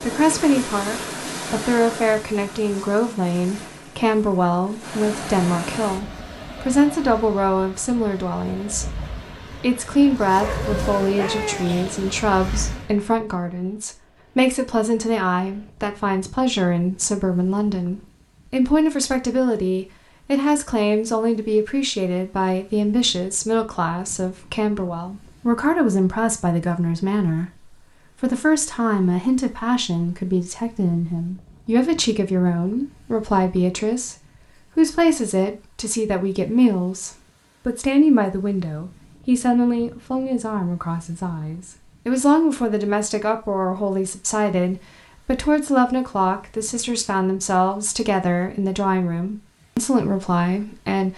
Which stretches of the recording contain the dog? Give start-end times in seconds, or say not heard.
10.3-11.9.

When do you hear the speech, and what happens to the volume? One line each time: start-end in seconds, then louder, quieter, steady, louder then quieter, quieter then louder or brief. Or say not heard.
0.0-51.1 steady.